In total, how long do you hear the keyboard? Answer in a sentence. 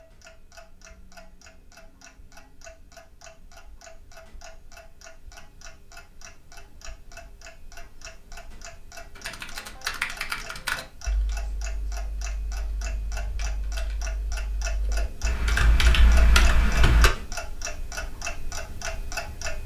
The keyboard can be heard for 8 seconds in total.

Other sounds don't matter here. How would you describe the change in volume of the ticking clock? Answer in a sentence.
The loudness of the ticking clock goes up.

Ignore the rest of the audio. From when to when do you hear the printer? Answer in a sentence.
You can't hear the printer here.